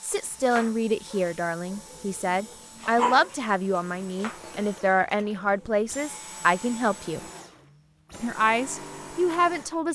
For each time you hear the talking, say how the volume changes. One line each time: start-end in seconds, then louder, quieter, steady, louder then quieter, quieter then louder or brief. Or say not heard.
0.0-7.2 steady
8.2-9.9 brief.